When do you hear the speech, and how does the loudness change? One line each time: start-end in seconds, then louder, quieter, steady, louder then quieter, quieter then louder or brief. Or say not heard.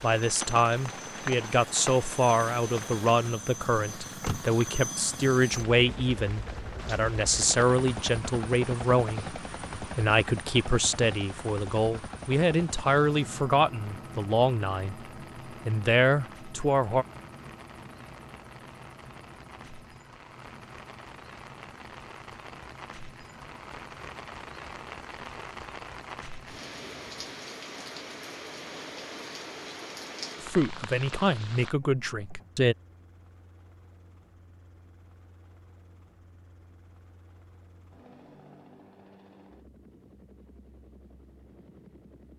0.0-17.1 steady
30.4-32.8 brief.